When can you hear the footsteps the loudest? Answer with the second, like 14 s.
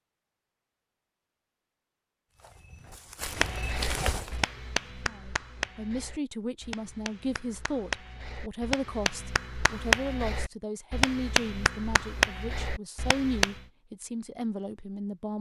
4 s.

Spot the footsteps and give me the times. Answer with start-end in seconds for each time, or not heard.
2.3-4.5.